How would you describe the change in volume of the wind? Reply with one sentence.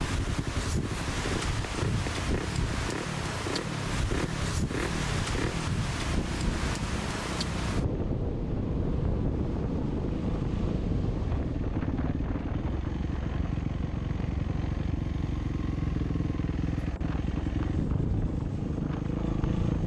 The loudness of the wind goes down.